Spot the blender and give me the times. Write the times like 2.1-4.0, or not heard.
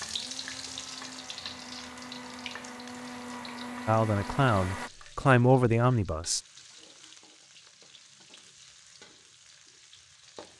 0.0-4.9.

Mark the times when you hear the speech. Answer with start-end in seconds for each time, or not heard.
3.9-6.4.